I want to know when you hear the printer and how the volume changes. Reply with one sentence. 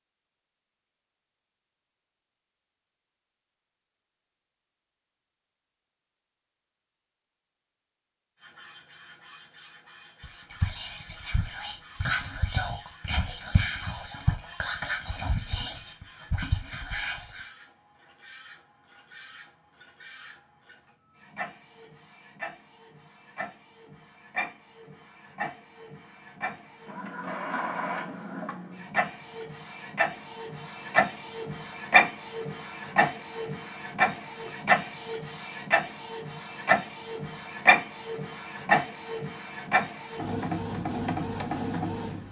The printer can be heard from 8.3 to 42.2 s, getting louder.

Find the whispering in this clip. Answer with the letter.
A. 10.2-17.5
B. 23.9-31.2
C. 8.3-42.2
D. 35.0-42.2
A.